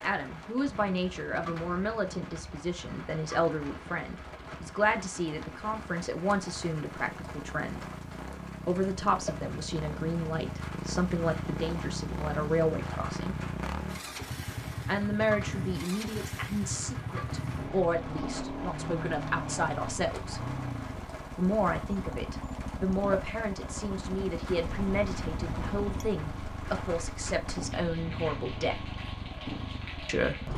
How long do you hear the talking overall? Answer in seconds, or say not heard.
26 s.